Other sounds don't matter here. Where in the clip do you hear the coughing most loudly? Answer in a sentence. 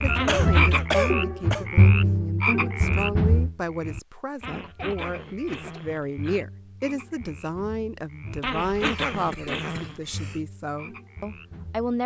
The loudest moment of the coughing is at 1 second.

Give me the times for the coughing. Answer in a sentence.
You can hear the coughing from 0.2 to 1.6 s, from 4.5 to 5.8 s and from 8.7 to 10.4 s.